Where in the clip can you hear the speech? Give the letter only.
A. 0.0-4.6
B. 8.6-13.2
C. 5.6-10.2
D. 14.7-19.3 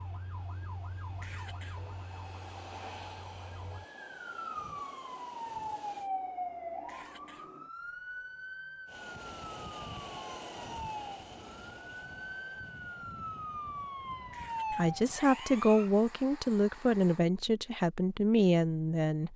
D.